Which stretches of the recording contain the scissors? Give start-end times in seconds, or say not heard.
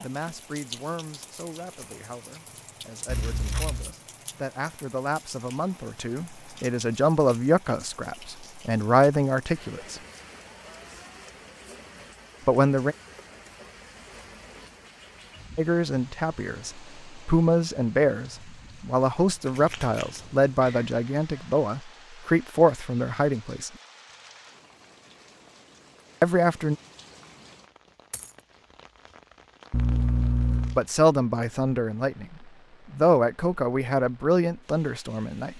3.0-4.0, 19.4-20.9, 29.7-30.8.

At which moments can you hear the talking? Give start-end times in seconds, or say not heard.
0.0-10.0, 12.4-12.9, 15.6-23.7, 26.2-26.8, 30.8-35.5.